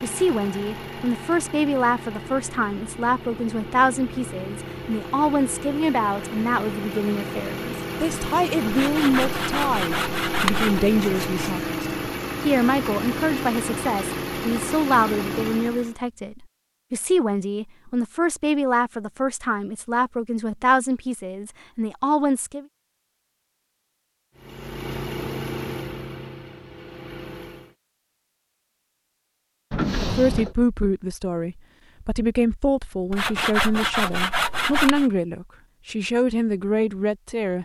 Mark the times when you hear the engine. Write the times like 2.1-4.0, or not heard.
0.0-15.9, 24.4-27.8.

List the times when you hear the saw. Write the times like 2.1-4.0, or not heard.
8.7-11.7, 33.1-35.1.